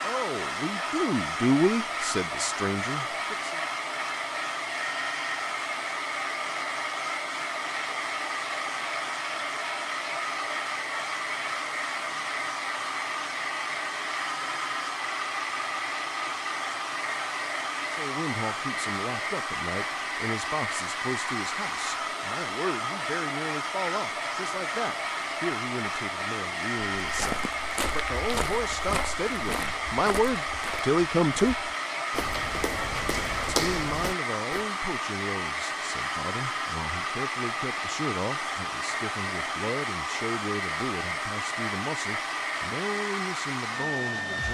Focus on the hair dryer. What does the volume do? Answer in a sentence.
The loudness of the hair dryer stays about the same.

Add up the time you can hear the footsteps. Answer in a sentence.
You can hear the footsteps for 8 seconds altogether.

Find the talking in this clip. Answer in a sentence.
You can hear the talking from 0.0 to 3.6 s, from 17.9 to 31.6 s and from 33.5 to 44.4 s.